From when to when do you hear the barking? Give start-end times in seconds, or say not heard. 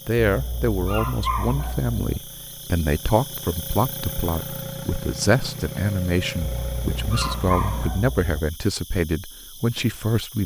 0.2-2.1, 6.4-8.3.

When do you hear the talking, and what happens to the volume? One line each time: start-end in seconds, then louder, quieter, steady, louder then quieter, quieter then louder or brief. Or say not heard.
0.1-10.4 steady.